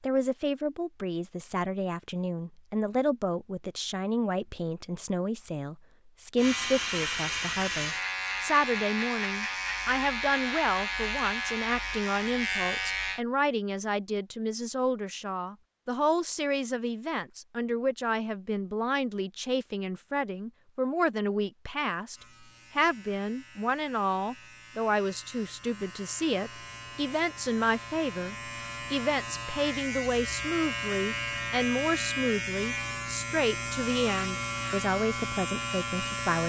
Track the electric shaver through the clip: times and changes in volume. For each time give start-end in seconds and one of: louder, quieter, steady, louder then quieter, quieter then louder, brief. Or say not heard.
6.3-13.2 steady
22.1-36.4 louder.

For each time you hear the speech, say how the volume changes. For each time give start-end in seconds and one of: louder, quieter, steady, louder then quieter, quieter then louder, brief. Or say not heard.
0.0-22.1 steady
22.8-36.4 steady.